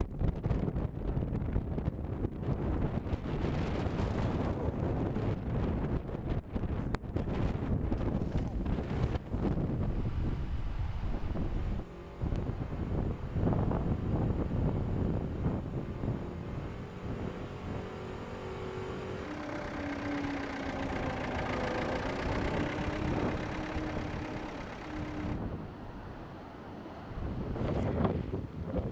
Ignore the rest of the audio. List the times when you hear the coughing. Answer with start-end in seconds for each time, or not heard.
not heard.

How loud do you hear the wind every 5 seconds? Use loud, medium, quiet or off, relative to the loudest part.
loud, loud, loud, medium, medium, loud.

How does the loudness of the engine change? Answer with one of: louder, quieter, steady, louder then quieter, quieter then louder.
louder.